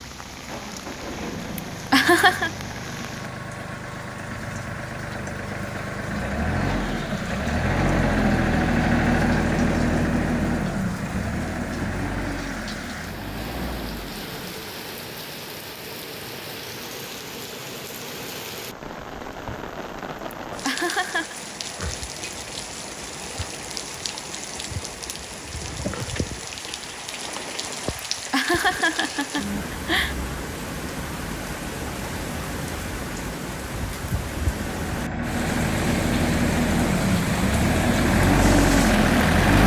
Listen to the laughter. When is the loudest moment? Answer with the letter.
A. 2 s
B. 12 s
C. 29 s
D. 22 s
A.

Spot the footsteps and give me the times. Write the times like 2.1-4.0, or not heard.
not heard.